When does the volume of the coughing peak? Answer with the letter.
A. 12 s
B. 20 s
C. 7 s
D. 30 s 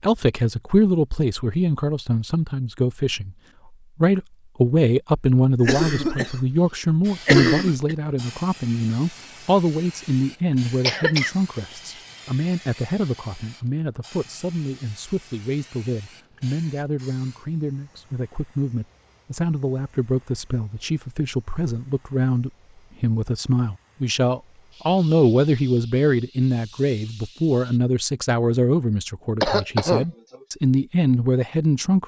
C.